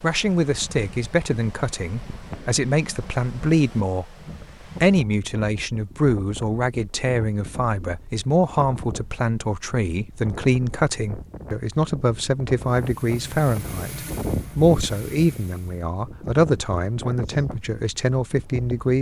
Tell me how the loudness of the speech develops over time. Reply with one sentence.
The volume of the speech stays about the same.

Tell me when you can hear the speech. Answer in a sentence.
The speech can be heard from 0.0 to 4.2 s and from 4.8 to 18.9 s.